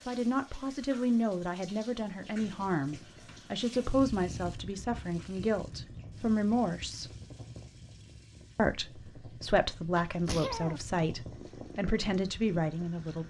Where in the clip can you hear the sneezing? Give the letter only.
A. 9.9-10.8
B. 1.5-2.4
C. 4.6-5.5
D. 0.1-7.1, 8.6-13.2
A.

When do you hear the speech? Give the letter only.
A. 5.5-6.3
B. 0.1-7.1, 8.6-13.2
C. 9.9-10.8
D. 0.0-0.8
B.